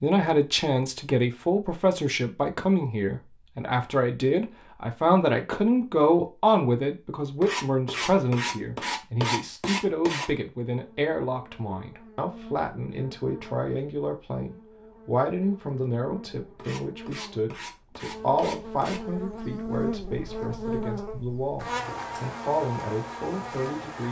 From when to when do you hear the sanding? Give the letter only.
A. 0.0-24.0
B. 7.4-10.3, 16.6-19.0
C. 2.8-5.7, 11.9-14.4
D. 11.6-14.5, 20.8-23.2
B.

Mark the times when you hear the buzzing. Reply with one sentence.
The buzzing can be heard from 10.7 to 24.0 s.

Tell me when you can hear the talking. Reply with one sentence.
The talking can be heard from 0.0 to 24.0 s.